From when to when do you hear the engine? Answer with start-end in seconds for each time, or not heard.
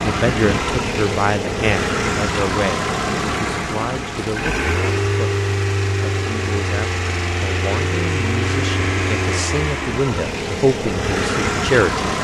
0.0-12.1.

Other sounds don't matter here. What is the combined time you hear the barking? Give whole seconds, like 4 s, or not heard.
not heard.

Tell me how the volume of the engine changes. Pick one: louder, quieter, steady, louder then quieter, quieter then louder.
steady.